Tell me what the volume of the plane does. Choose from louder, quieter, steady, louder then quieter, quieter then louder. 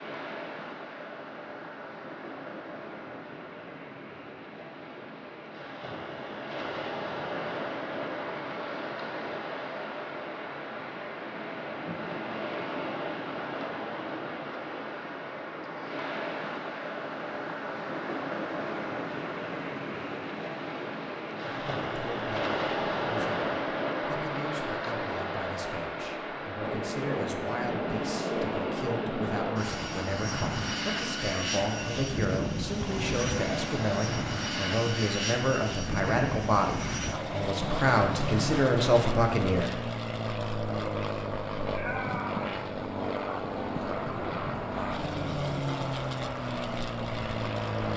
steady.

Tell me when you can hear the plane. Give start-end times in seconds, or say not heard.
26.6-47.9.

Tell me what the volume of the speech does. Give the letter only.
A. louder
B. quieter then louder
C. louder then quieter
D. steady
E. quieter
A.